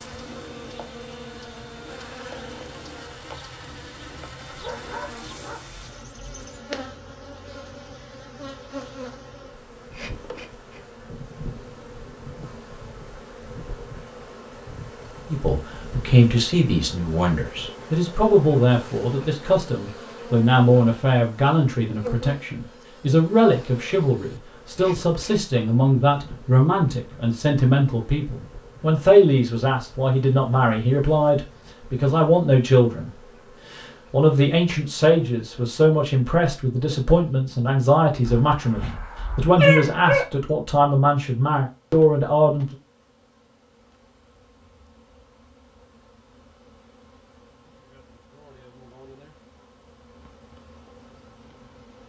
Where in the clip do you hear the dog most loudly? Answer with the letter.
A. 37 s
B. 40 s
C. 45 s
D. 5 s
B.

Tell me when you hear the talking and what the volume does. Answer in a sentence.
You can hear the talking from 15.2 to 33.1 s, at a steady volume; and from 33.7 to 42.8 s, at a steady volume.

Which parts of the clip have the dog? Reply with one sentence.
The dog can be heard from 4.5 to 6.4 s and from 38.2 to 40.2 s.